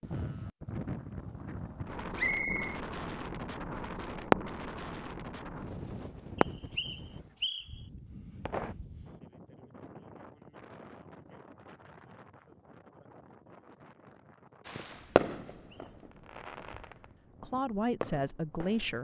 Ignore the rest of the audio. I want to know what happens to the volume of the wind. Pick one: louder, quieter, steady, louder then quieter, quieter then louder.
quieter.